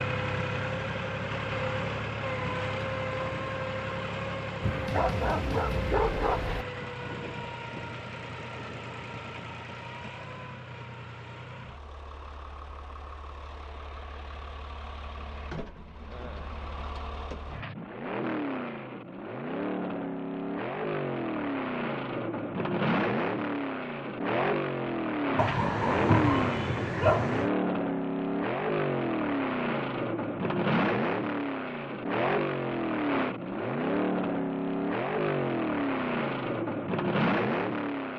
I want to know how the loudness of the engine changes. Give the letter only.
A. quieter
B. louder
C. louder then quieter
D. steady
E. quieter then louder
E.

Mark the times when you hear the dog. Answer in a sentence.
The dog can be heard from 4.6 to 6.7 s and from 25.4 to 27.5 s.